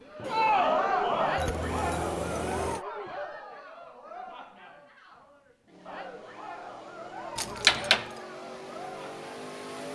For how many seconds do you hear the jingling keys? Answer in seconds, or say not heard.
2 s.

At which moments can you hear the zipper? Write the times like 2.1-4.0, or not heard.
not heard.